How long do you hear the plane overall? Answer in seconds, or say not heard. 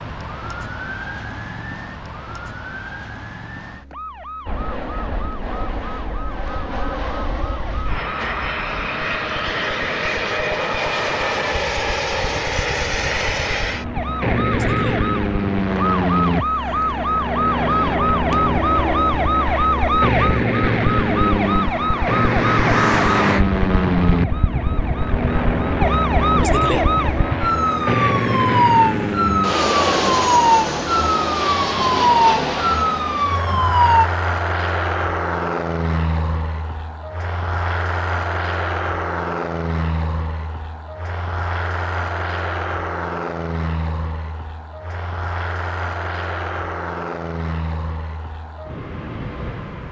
45 s.